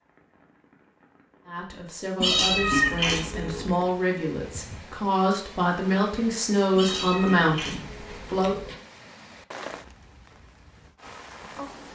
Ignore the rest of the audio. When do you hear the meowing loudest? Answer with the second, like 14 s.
3 s.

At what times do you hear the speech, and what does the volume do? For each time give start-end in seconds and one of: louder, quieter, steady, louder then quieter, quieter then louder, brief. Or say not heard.
1.4-8.6 louder.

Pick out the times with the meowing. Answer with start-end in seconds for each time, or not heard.
2.2-3.9, 6.8-8.8.